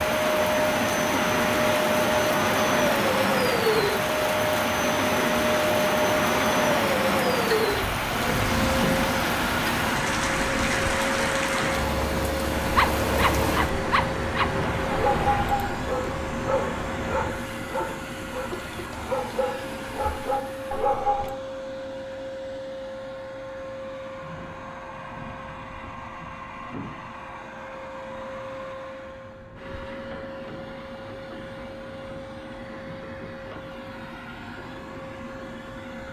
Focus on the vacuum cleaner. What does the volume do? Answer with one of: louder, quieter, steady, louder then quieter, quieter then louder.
quieter.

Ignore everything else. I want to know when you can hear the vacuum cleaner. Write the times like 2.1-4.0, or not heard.
0.0-36.0.